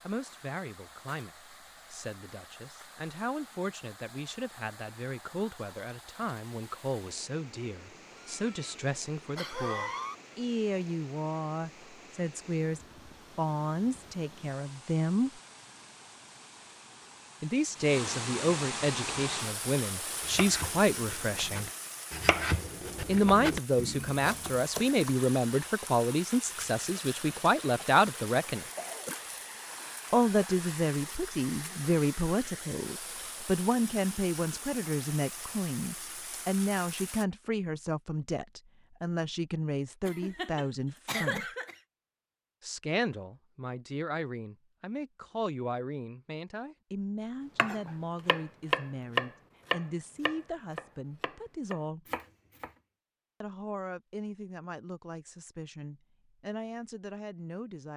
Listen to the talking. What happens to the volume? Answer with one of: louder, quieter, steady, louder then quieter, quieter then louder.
louder then quieter.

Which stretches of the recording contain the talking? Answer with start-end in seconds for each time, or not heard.
0.1-15.4, 17.4-21.7, 23.1-28.6, 30.1-41.5, 42.6-52.0, 53.4-57.9.